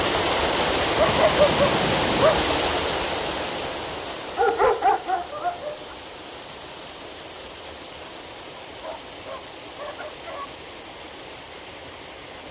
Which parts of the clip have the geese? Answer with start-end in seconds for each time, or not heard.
not heard.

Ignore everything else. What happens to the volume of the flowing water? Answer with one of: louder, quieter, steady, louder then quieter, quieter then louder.
quieter.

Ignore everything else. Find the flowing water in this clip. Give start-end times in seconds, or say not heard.
0.0-12.4.